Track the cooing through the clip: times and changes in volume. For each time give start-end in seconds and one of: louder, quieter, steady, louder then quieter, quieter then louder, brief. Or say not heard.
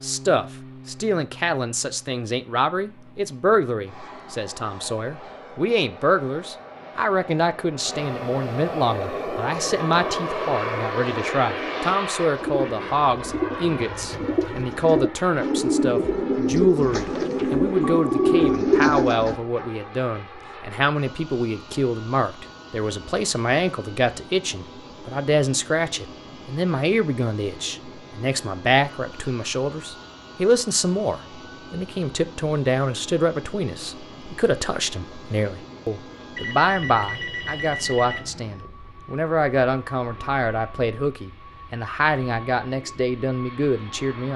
8.8-19.4 louder.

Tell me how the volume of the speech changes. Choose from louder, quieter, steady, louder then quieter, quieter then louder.
steady.